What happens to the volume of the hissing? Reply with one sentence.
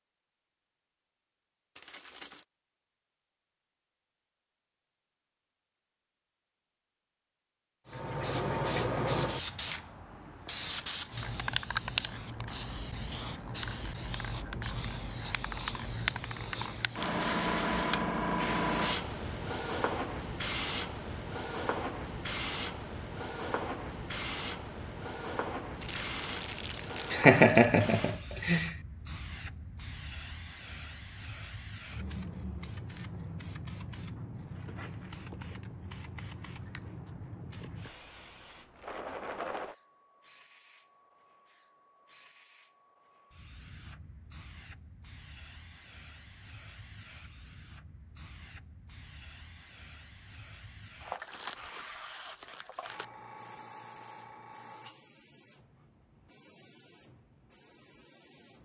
The loudness of the hissing goes down.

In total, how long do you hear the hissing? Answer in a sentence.
The hissing can be heard for 51 seconds in total.